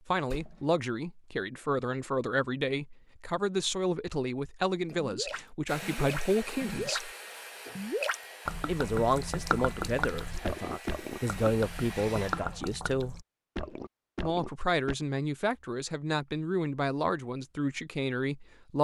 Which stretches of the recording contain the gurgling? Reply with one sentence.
The gurgling can be heard from 4.9 to 7.0 s and from 7.7 to 14.9 s.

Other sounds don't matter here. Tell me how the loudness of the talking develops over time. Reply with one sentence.
The volume of the talking stays about the same.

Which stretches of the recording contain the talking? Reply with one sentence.
The talking can be heard from 0.1 to 7.1 s, from 8.7 to 13.2 s and from 14.2 to 18.7 s.